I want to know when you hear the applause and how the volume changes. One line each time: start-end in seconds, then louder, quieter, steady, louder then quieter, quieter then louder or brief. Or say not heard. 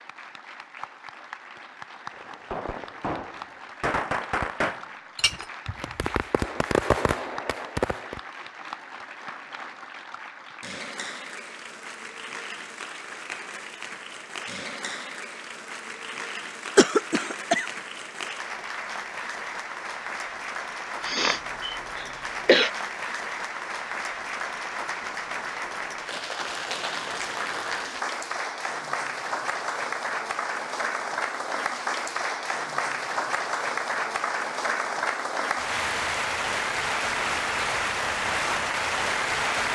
0.0-39.7 louder.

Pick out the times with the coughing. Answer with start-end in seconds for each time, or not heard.
16.8-17.7, 21.1-22.7.